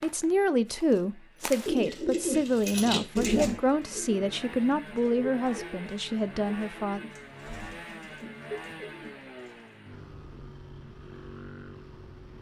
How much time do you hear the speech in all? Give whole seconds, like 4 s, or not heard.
7 s.